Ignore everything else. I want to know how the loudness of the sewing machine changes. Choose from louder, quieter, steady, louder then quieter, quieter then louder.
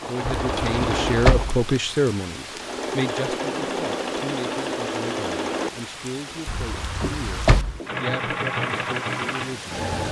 quieter then louder.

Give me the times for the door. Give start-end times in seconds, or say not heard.
0.2-1.6, 6.5-7.8.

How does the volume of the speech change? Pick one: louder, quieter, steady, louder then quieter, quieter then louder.
quieter.